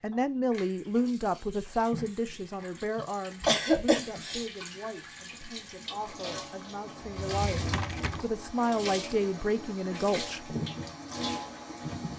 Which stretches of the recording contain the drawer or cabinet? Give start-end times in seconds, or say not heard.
7.0-8.3.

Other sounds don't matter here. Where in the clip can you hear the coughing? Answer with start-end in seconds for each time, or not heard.
3.0-4.5.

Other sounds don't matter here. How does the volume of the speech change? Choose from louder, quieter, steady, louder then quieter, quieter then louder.
quieter then louder.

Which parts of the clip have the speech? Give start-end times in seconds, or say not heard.
0.0-10.6.